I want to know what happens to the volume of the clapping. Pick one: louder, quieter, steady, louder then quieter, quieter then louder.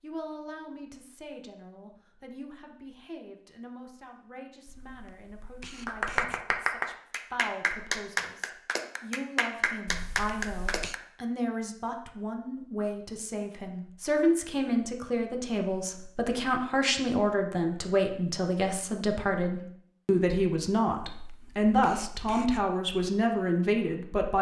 steady.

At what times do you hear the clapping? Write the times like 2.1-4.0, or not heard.
5.8-10.9.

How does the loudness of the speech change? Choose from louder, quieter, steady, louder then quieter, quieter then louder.
louder.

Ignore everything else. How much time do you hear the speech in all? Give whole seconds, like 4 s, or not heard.
24 s.